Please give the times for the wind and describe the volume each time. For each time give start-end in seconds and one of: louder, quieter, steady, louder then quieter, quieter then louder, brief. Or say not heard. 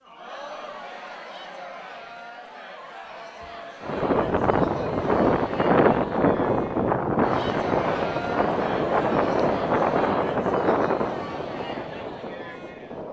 3.8-13.0 quieter.